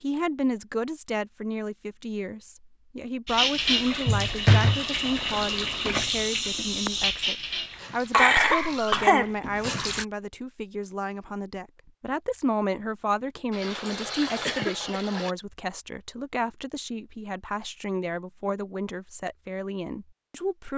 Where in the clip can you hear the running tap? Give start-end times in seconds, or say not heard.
3.2-10.1, 13.5-15.3.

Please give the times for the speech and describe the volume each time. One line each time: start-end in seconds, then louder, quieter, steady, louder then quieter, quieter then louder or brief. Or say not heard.
0.0-20.7 steady.